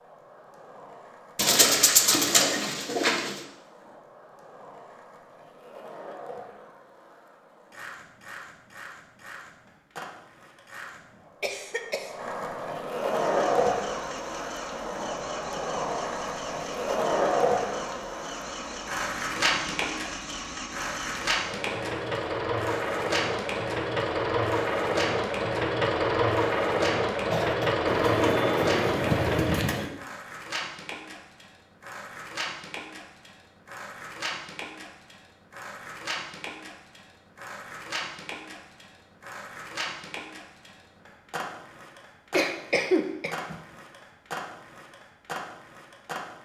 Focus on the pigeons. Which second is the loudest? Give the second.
2 s.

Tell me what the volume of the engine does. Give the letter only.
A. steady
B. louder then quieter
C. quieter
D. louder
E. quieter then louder
D.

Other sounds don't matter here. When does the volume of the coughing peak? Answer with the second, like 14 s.
43 s.